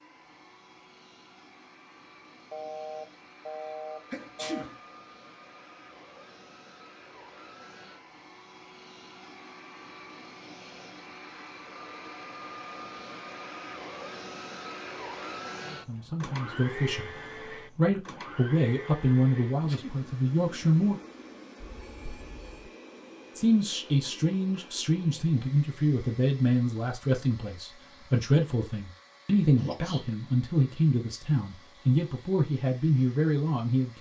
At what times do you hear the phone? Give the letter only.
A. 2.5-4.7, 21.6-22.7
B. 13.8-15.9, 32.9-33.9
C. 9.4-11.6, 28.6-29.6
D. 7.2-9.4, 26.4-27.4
A.